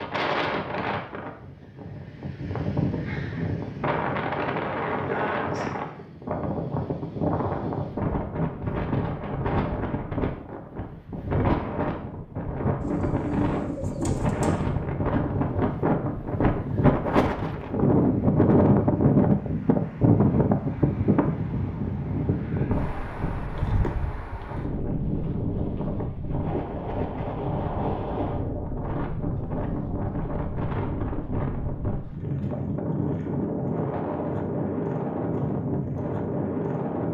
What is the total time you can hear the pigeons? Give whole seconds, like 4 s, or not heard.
2 s.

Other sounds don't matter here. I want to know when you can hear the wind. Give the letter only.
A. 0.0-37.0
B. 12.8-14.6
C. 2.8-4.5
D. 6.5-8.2
A.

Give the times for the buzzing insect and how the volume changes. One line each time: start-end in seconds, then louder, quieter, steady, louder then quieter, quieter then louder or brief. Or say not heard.
not heard.